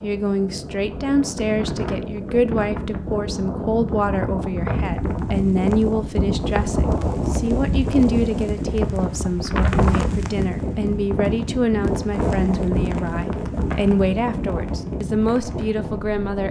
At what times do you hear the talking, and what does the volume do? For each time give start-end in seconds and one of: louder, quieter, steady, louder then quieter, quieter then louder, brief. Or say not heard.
0.0-16.4 steady.